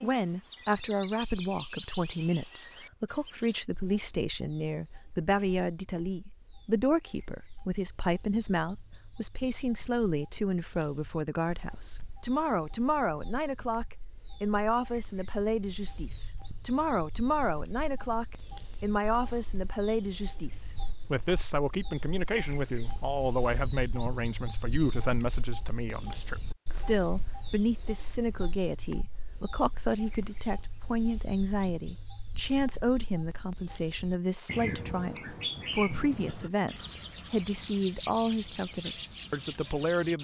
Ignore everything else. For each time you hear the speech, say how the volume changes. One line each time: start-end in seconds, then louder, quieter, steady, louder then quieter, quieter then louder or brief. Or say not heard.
0.0-40.1 steady.